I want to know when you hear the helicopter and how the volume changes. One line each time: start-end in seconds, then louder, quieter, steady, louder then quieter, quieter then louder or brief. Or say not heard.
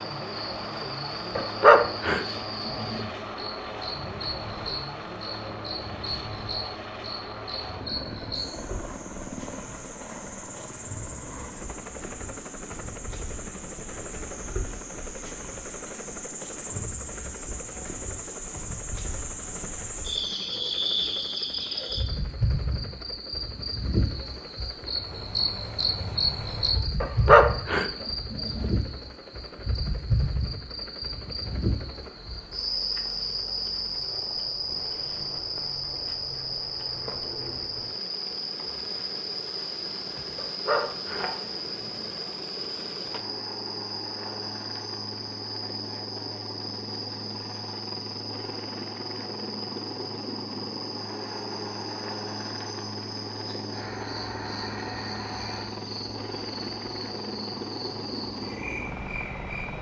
0.0-59.7 quieter then louder.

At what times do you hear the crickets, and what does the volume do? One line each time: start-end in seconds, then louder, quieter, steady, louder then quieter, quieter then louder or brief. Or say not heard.
0.0-59.7 louder then quieter.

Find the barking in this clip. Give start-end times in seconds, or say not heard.
1.4-3.1, 27.0-28.8, 40.4-42.1.